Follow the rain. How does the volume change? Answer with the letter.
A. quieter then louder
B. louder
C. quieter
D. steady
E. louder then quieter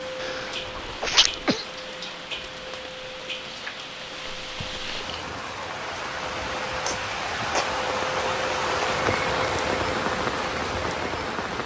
B.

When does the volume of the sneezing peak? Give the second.
1 s.